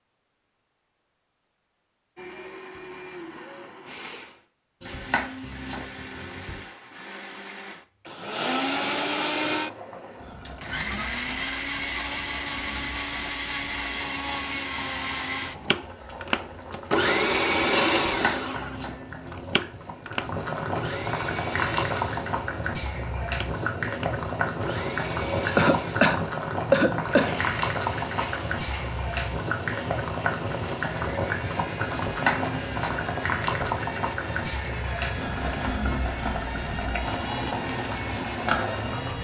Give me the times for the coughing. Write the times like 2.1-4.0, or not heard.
25.6-27.4.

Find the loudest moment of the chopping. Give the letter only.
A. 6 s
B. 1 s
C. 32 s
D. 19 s
C.